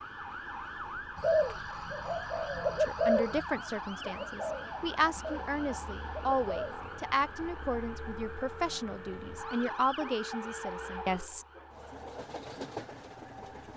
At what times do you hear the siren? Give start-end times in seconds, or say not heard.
0.0-13.7.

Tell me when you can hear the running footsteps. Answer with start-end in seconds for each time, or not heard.
not heard.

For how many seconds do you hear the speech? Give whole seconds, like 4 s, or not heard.
9 s.